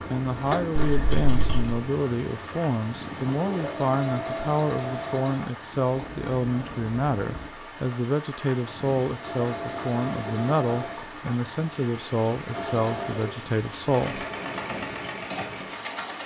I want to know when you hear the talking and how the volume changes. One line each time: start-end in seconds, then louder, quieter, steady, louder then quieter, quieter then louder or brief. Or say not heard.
0.1-14.2 steady.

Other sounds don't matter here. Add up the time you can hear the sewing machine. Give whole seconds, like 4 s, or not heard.
11 s.